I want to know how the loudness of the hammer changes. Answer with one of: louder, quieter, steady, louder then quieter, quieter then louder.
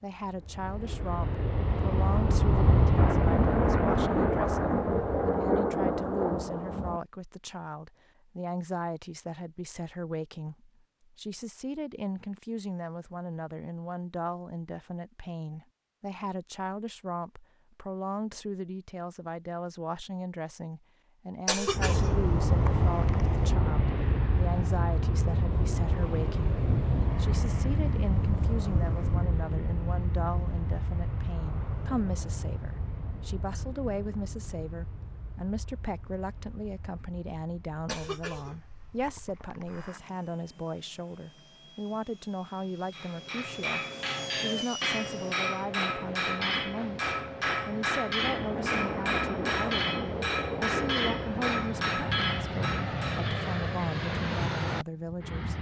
steady.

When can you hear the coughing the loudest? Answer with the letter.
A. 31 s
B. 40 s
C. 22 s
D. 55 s
C.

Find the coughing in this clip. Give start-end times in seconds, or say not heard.
21.4-23.5, 37.9-39.9.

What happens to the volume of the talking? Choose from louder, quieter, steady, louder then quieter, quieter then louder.
steady.